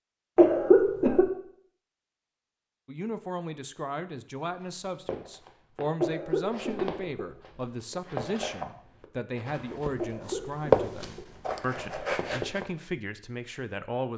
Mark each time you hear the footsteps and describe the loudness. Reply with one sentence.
The footsteps can be heard from 4.6 to 12.7 s, getting louder then quieter.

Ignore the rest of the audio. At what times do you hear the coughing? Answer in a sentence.
The coughing can be heard from 0.3 to 1.3 s, from 6.0 to 7.7 s and from 9.9 to 11.3 s.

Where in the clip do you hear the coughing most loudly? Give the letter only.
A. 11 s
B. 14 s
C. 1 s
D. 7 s
C.